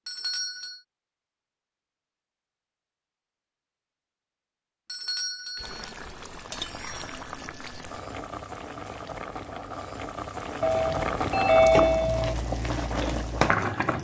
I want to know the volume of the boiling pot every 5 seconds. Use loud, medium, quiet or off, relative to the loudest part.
off, medium, loud.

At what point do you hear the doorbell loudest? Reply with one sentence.
The loudest moment of the doorbell is at 12 seconds.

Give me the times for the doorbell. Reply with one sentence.
You can hear the doorbell from 0.1 to 0.8 s, from 4.8 to 5.9 s and from 10.6 to 12.3 s.